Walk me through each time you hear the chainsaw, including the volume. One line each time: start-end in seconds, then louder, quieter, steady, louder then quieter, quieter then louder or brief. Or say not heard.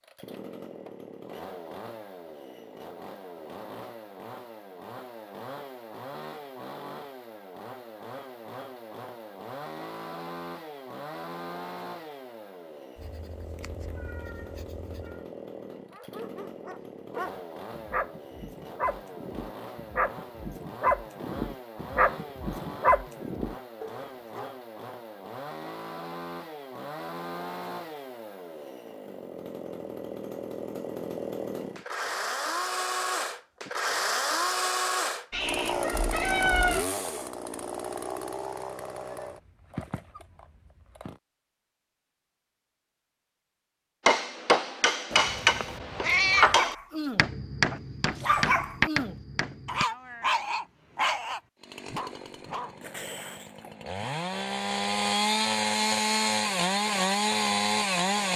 0.0-41.2 louder
51.6-58.3 louder.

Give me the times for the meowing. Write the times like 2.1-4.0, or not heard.
12.9-15.2, 35.3-36.9, 45.1-46.5.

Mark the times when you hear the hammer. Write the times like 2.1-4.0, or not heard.
44.0-49.9.